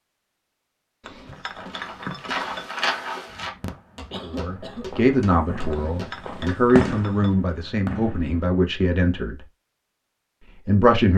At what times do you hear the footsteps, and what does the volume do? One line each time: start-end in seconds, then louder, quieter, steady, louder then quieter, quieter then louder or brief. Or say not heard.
1.6-7.5 quieter.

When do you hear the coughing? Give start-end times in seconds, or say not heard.
3.6-5.0.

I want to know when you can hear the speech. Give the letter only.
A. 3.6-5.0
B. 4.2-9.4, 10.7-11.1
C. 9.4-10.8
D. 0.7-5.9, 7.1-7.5
B.